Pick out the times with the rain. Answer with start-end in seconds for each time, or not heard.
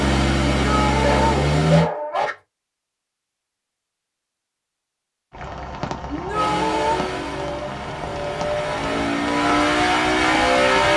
5.3-10.9.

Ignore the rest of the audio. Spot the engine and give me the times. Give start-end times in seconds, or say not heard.
0.0-1.9, 6.3-10.9.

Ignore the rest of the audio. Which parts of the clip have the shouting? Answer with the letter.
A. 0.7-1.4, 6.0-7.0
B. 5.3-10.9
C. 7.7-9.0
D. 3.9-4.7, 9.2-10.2
A.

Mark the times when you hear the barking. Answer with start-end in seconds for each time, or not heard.
1.0-2.4.